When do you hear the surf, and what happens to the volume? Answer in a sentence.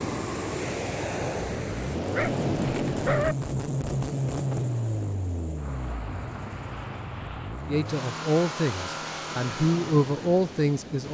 The surf can be heard from 0.0 to 11.0 s, getting quieter.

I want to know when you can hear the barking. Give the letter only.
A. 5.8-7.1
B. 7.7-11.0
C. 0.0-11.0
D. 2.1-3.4
D.